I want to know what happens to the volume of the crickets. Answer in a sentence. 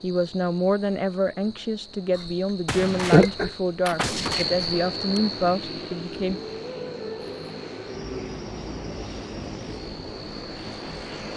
The loudness of the crickets goes up, then down.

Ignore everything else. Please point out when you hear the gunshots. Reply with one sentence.
The gunshots can be heard from 2.6 to 5.2 s.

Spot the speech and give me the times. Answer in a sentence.
The speech can be heard from 0.0 to 6.4 s.